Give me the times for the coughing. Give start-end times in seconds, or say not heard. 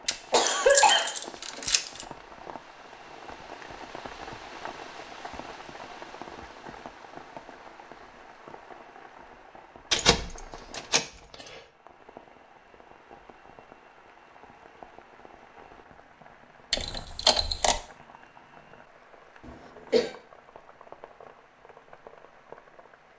0.3-1.6, 19.4-20.1.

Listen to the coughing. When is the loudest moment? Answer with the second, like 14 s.
1 s.